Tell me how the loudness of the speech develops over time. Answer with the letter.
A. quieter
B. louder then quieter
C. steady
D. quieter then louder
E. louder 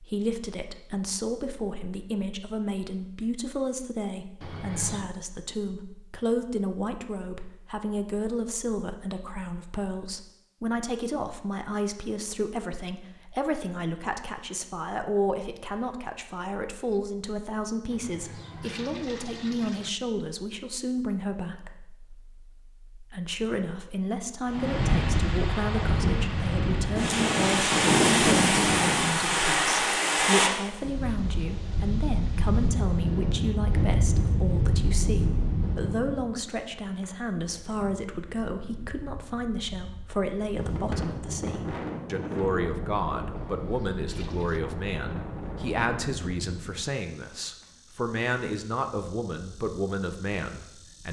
C.